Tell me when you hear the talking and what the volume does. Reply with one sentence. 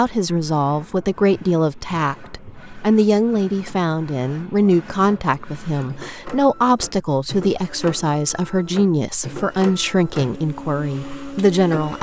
The talking can be heard from 0.0 to 11.9 s, at a steady volume.